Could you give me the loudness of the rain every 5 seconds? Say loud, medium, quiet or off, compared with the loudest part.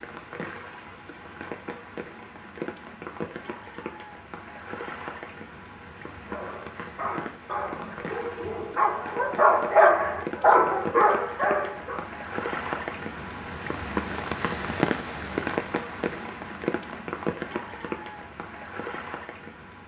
medium, medium, loud, loud.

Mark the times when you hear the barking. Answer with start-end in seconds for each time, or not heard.
6.2-12.1.